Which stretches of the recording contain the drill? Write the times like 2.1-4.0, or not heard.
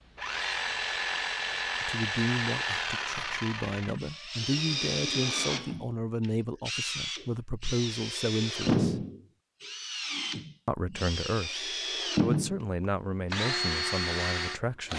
0.1-14.9.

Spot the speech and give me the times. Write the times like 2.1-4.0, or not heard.
1.8-9.1, 10.7-14.9.